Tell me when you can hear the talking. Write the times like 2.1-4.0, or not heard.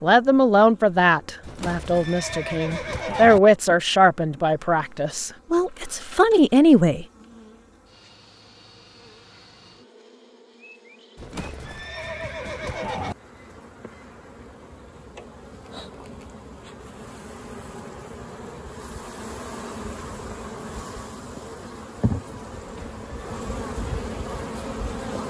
0.0-7.0.